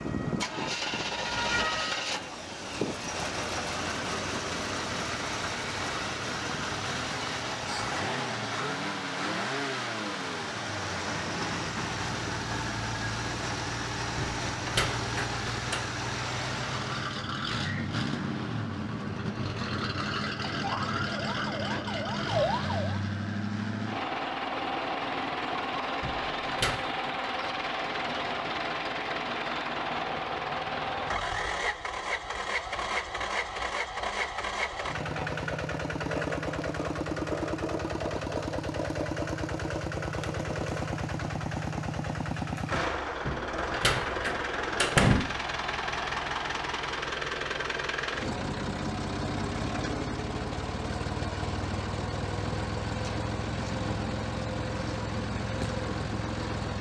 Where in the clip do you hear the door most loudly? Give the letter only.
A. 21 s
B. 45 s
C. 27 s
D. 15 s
B.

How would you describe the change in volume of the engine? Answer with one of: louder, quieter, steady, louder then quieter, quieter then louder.
steady.